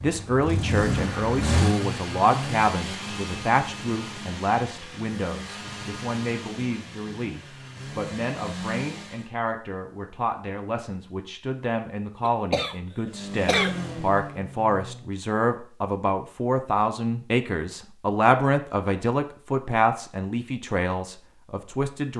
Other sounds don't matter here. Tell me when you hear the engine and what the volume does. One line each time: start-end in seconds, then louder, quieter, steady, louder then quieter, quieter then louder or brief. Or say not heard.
0.0-9.3 quieter
13.1-15.2 brief.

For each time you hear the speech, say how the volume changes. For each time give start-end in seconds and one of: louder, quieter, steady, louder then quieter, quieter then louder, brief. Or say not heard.
0.0-22.1 quieter then louder.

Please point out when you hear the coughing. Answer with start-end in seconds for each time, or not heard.
12.2-13.8.